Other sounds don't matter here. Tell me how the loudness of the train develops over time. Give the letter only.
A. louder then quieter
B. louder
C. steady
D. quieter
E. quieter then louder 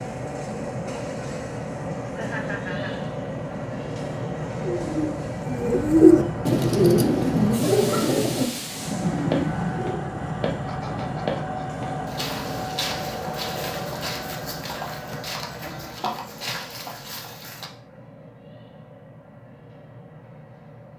D.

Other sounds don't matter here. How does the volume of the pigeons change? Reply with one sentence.
The volume of the pigeons goes up, then down.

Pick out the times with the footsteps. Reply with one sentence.
The footsteps can be heard from 9.3 to 17.7 s.